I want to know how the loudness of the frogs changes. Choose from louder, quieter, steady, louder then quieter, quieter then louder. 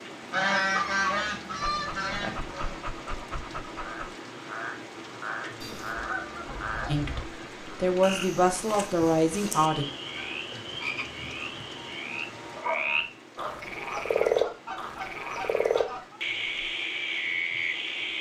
louder.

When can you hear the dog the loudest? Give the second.
13 s.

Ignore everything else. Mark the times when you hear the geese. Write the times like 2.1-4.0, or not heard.
0.3-2.8, 5.6-7.2, 9.6-12.1, 13.9-16.2.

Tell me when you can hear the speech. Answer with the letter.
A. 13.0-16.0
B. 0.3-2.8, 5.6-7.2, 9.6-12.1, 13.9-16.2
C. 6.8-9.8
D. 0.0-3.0
C.